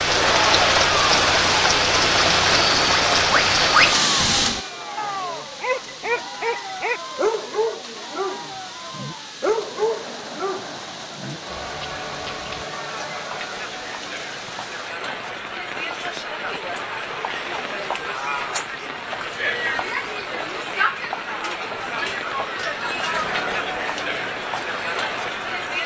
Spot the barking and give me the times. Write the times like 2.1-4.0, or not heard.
4.2-12.7.